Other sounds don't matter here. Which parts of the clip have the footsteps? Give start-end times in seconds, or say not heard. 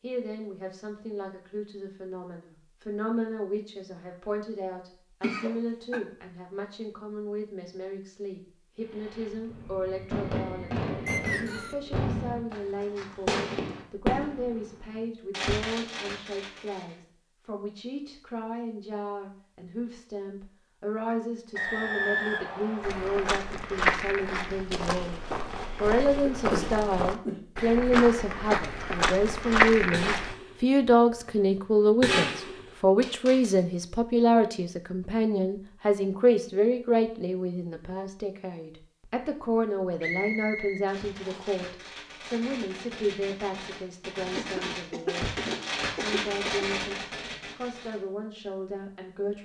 22.8-30.4.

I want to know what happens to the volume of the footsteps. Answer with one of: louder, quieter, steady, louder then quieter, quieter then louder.
quieter then louder.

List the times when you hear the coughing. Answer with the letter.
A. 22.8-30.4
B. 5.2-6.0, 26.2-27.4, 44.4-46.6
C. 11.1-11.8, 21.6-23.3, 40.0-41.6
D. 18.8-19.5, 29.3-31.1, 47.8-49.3
B.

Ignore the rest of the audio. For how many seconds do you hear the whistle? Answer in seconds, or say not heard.
4 s.